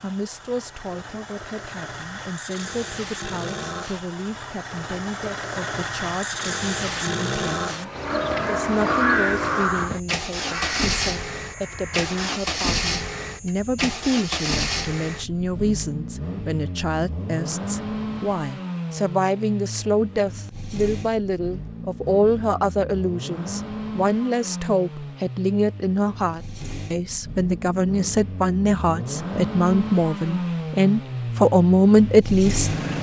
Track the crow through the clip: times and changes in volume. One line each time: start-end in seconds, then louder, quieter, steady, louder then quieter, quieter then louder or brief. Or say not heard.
8.0-12.4 quieter.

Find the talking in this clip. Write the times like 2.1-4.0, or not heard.
0.0-32.7.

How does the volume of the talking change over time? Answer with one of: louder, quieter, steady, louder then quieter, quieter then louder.
louder.